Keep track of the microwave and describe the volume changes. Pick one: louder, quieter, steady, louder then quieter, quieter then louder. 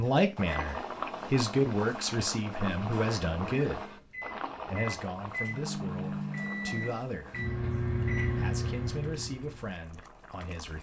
louder.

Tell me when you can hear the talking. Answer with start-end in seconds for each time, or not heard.
0.0-4.0, 4.7-7.5, 8.3-10.7.